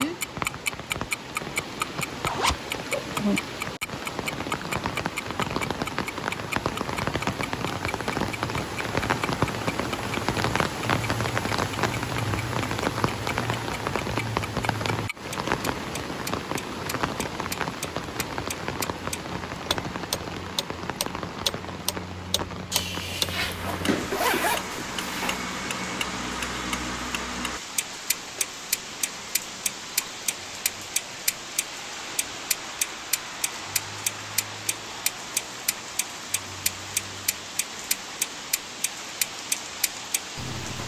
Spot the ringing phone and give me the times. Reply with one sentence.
The ringing phone can't be heard in this clip.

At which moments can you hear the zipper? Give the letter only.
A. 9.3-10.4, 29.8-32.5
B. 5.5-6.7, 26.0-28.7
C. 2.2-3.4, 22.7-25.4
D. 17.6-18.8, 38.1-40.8
C.